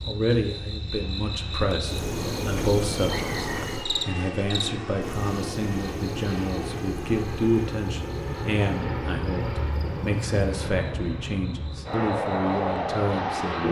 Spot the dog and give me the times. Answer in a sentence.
The dog can't be heard in this clip.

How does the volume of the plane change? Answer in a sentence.
The loudness of the plane goes up.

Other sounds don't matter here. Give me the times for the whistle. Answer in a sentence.
The whistle can be heard from 3.0 to 3.8 s.